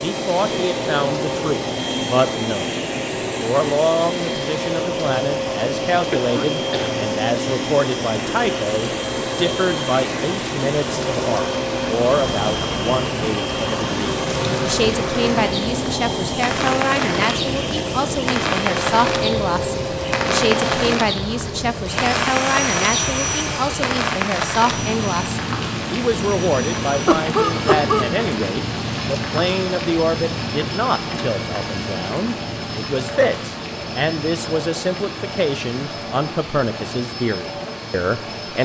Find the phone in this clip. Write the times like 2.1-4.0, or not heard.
not heard.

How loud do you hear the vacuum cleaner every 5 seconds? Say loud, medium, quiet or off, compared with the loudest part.
loud, loud, loud, loud, loud, medium, medium, medium.